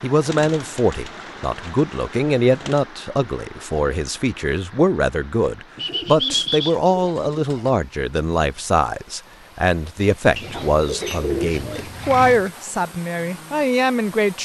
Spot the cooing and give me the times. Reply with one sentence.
The cooing can be heard from 0.2 to 2.8 s, from 5.8 to 7.8 s and from 10.3 to 12.5 s.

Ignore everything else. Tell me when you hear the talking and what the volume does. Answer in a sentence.
You can hear the talking from 0.0 to 14.4 s, at a steady volume.